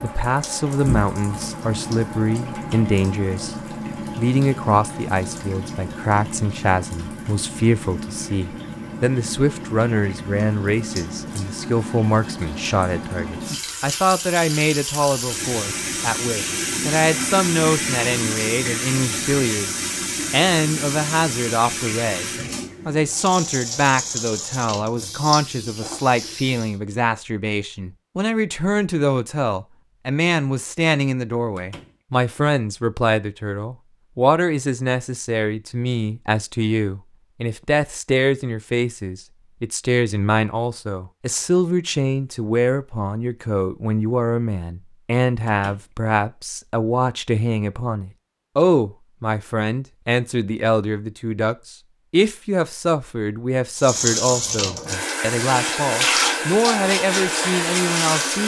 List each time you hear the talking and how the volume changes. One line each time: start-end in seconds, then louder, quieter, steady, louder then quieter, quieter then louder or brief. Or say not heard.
0.0-58.4 steady.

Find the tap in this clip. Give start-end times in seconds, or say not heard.
0.0-26.8, 53.8-58.4.